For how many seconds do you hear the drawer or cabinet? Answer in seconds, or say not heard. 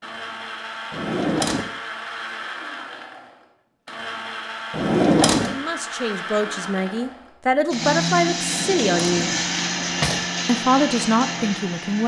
3 s.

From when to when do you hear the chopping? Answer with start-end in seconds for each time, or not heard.
not heard.